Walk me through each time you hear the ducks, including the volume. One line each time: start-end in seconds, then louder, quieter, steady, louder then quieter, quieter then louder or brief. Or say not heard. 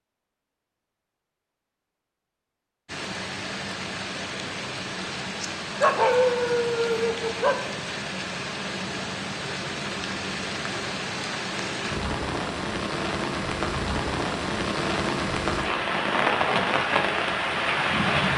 not heard.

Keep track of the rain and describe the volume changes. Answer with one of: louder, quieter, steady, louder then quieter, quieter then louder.
louder.